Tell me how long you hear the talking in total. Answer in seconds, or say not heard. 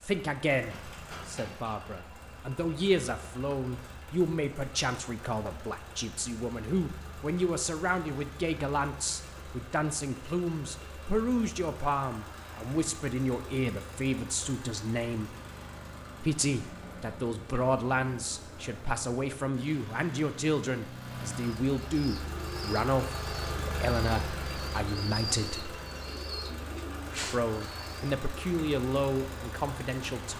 28 s.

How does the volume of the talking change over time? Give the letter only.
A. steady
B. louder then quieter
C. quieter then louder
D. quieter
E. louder
A.